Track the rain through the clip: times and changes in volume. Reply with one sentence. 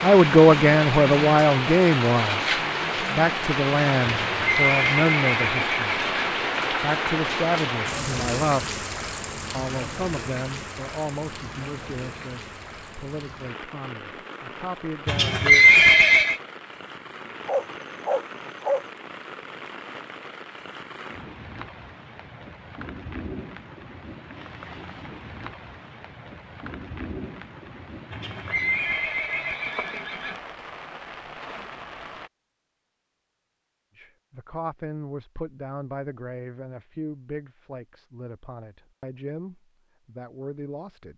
The rain can be heard from 0.0 to 32.3 s, getting quieter.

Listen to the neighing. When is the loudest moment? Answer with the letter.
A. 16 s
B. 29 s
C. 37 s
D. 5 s
A.